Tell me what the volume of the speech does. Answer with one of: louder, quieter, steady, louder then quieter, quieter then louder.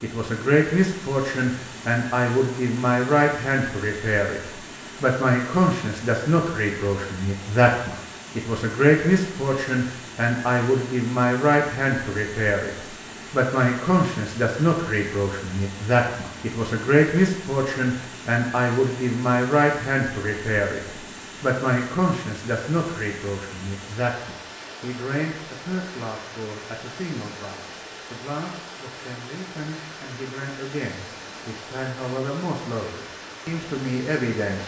quieter.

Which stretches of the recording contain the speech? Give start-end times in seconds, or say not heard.
0.0-34.6.